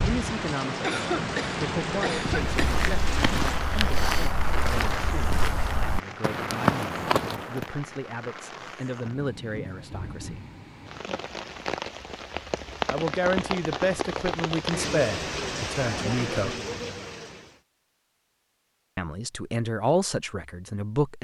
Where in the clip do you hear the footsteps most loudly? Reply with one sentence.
The loudest moment of the footsteps is at 7 seconds.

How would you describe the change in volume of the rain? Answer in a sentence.
The loudness of the rain goes down, then up.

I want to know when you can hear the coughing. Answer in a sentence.
You can hear the coughing from 0.8 to 2.8 s.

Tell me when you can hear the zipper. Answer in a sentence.
The zipper can't be heard in this clip.